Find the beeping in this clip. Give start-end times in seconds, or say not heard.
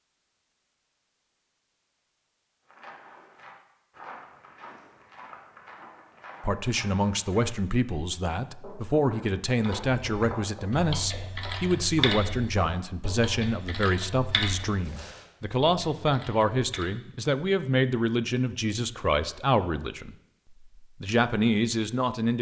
not heard.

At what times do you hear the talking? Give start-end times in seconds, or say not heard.
6.4-20.1, 21.0-22.3.